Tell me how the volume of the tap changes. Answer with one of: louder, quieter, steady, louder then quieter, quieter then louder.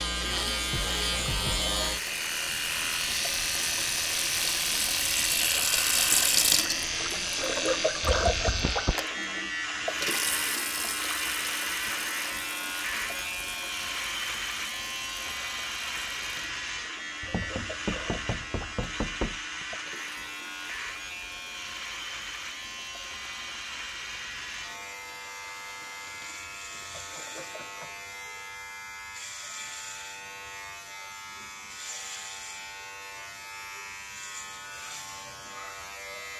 quieter.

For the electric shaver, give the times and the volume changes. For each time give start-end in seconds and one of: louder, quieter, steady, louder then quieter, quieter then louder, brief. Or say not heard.
0.0-36.3 quieter.